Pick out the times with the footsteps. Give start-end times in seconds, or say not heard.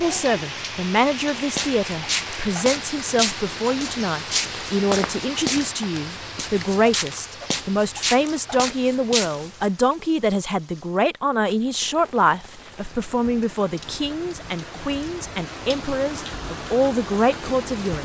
1.6-9.7.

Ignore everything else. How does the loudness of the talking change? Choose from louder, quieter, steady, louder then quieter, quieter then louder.
steady.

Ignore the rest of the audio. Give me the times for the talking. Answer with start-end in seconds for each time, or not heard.
0.0-18.0.